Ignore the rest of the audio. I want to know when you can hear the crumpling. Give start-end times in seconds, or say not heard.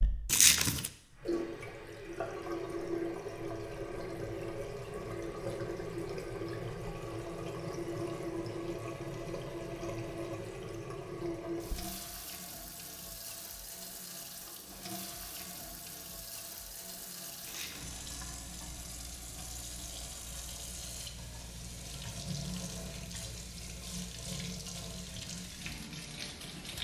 0.2-0.9, 17.4-18.2.